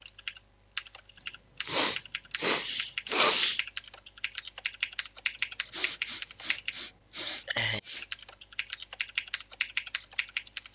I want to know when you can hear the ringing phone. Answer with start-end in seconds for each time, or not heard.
not heard.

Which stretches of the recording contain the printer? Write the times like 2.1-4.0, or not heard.
not heard.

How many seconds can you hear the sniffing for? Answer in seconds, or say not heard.
5 s.